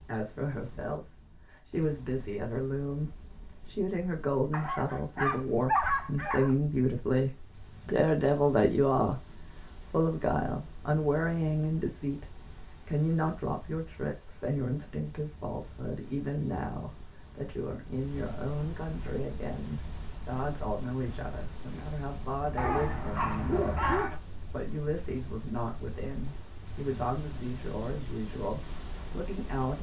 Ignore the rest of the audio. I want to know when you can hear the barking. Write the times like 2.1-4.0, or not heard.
4.5-6.5, 22.6-24.2.